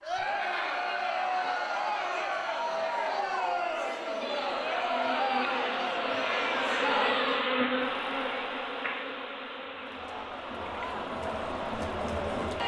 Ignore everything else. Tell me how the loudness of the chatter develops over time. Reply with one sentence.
The loudness of the chatter goes down, then up.